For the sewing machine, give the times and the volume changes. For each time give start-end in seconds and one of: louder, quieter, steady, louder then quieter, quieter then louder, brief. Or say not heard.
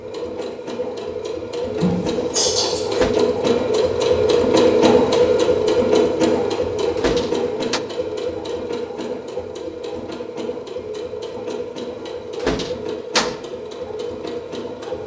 0.0-15.0 louder then quieter.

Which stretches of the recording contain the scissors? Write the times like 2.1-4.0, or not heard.
1.8-3.0.